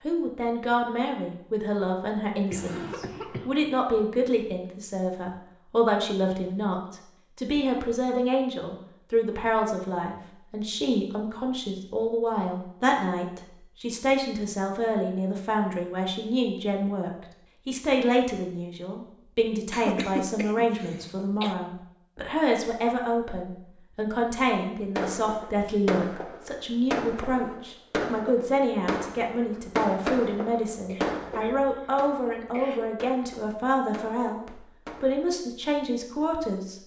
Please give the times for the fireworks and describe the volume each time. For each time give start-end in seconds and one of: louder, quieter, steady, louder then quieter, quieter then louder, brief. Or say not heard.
24.9-35.2 quieter.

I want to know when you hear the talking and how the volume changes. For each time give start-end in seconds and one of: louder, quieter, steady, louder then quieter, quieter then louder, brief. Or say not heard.
0.1-36.8 steady.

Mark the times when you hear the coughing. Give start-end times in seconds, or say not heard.
2.5-3.5, 19.7-21.6, 30.9-32.9.